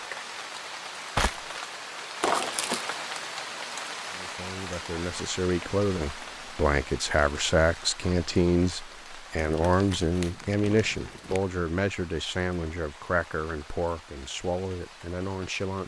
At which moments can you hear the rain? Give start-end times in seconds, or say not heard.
0.0-15.8.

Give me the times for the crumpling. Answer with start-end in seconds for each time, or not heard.
2.2-2.9, 9.4-11.4.